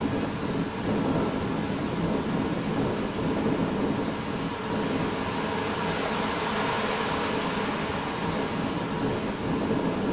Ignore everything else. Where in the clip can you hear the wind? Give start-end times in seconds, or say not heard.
0.0-10.0.